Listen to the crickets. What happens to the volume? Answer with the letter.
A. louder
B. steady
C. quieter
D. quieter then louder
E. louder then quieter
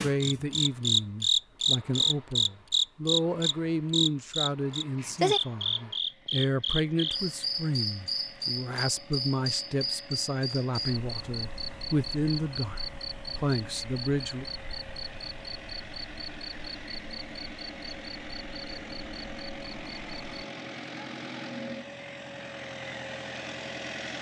C.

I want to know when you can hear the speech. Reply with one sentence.
You can hear the speech from 0.0 to 14.4 s.